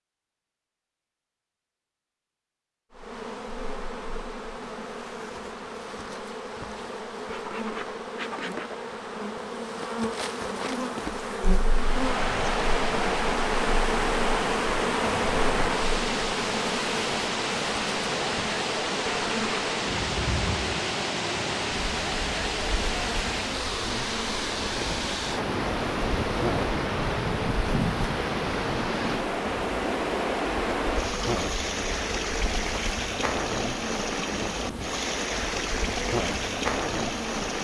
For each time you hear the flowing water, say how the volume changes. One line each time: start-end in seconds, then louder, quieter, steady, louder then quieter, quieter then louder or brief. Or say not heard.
11.6-37.6 steady.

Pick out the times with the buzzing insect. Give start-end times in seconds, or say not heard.
2.9-37.6.